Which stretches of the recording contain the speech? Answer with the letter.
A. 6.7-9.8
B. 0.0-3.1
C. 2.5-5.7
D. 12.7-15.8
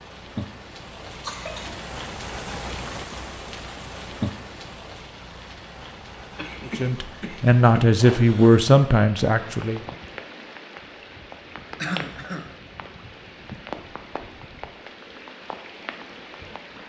A.